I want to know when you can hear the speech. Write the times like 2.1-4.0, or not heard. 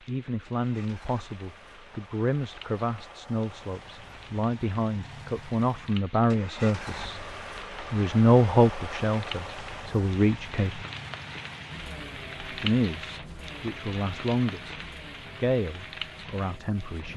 0.1-7.2, 7.9-10.8, 12.5-17.1.